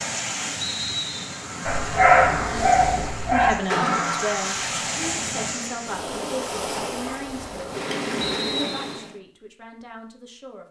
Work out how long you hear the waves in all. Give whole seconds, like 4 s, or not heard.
9 s.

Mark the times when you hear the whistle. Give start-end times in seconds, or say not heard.
0.6-1.4, 8.2-9.1.